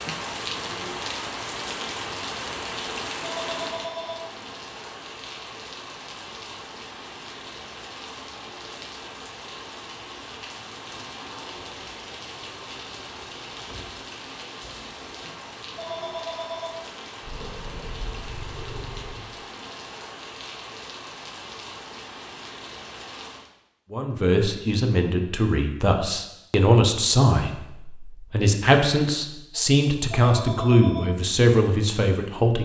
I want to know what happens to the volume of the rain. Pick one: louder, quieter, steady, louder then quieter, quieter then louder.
quieter.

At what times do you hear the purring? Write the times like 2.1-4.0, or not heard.
17.2-19.2.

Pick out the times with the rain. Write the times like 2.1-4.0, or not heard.
0.0-23.5.